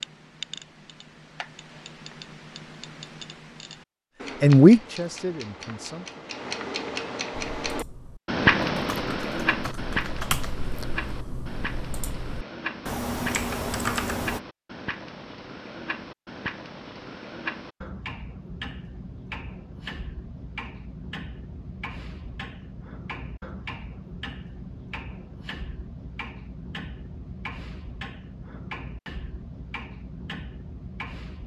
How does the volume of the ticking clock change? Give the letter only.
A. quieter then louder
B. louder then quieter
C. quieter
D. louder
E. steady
B.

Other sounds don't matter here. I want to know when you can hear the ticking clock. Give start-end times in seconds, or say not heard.
0.0-31.4.